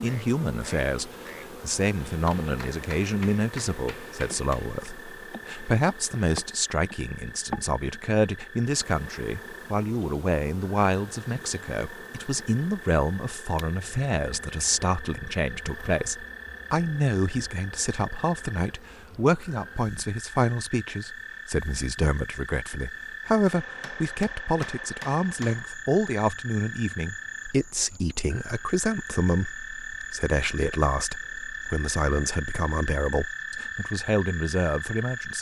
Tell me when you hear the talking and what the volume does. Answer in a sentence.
You can hear the talking from 0.0 to 35.3 s, at a steady volume.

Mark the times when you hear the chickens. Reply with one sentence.
The chickens can't be heard in this clip.